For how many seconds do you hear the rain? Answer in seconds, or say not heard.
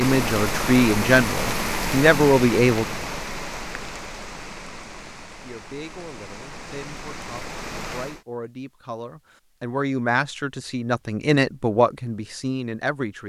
8 s.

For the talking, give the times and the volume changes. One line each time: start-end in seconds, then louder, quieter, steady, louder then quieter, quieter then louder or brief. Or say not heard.
0.0-2.9 brief
5.4-13.2 louder.